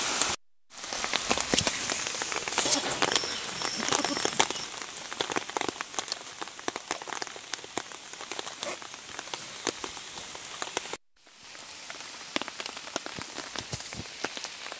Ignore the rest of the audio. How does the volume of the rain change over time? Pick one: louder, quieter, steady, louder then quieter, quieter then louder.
quieter.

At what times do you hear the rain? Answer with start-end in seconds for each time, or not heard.
0.0-14.7.